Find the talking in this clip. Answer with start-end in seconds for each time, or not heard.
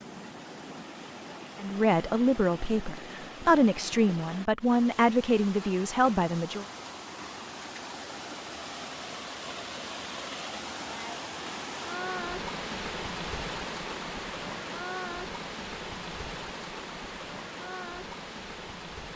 1.6-6.7.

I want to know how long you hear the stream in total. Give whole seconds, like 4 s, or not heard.
19 s.